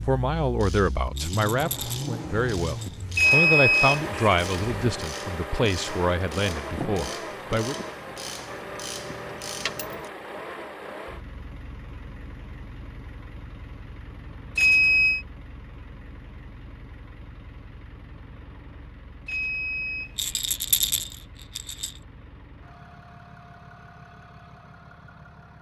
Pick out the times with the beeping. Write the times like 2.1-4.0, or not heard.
3.1-5.0, 14.6-15.2, 19.2-21.1.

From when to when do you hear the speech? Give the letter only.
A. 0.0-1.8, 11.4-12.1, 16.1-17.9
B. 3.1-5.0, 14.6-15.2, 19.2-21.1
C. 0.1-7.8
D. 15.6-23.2
C.